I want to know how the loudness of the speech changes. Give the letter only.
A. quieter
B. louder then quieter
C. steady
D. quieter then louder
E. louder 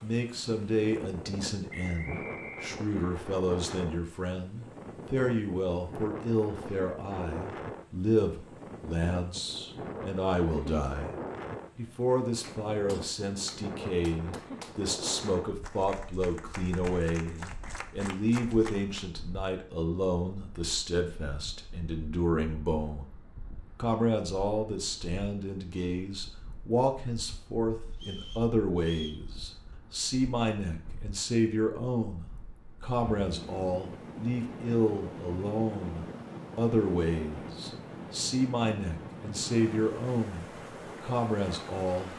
C.